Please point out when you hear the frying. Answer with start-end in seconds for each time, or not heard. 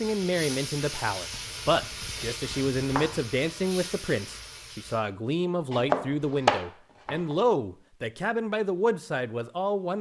0.0-5.0.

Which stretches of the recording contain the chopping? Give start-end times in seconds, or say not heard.
1.3-3.2, 5.7-7.3.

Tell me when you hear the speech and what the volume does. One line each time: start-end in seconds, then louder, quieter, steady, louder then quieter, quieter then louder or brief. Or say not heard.
0.0-9.9 steady.